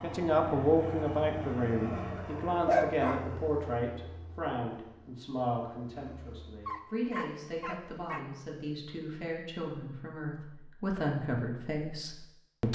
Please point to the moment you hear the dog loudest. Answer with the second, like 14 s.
3 s.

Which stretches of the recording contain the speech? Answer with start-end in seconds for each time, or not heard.
0.0-12.7.